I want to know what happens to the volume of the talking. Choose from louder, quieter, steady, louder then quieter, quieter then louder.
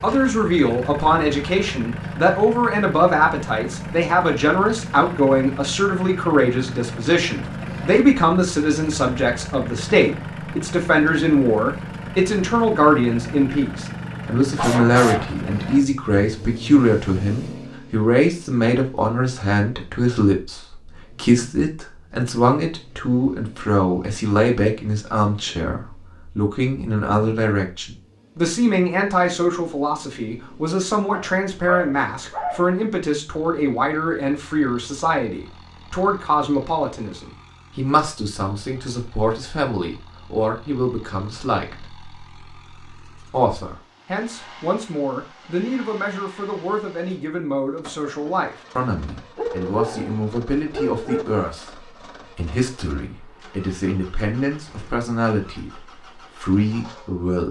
quieter.